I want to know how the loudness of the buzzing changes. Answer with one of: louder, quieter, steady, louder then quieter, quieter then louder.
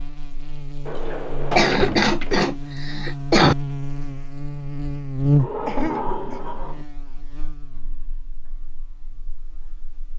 louder then quieter.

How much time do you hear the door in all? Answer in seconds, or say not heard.
3 s.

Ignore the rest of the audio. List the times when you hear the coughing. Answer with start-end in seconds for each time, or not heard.
1.6-3.5, 5.7-6.4.